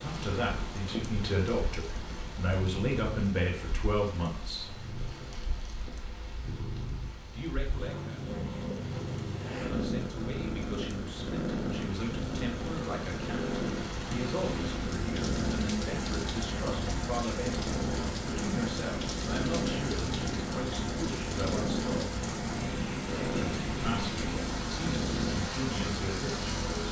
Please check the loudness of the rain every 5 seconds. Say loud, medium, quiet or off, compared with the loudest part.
medium, quiet, medium, loud, loud, loud.